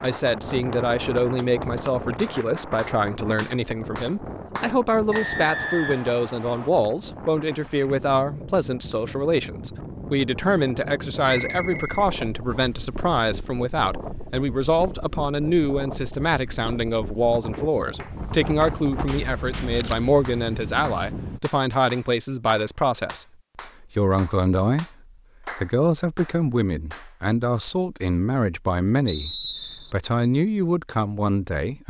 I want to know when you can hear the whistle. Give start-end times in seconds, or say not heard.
5.1-6.7, 11.2-12.7, 29.1-29.9.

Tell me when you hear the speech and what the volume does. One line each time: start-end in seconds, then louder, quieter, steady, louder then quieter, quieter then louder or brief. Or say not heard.
0.0-24.9 steady
25.4-31.8 steady.